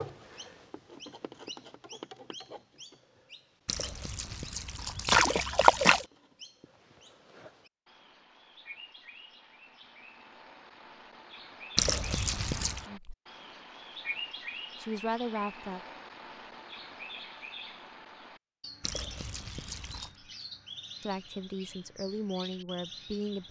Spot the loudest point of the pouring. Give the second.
6 s.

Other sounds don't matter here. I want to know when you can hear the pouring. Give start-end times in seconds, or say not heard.
3.6-6.0, 11.8-12.8, 18.8-20.1.